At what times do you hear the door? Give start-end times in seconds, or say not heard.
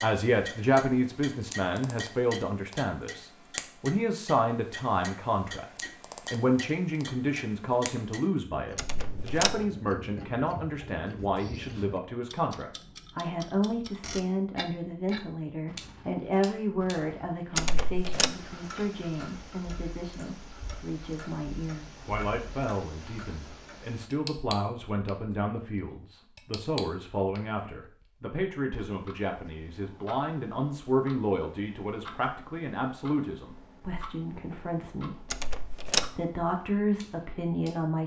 8.8-9.7, 17.6-18.4, 35.3-36.1.